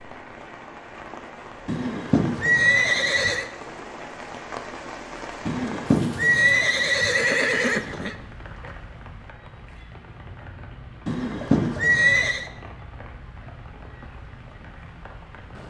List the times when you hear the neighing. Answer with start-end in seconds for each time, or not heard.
1.6-3.5, 5.5-8.2, 11.1-12.4.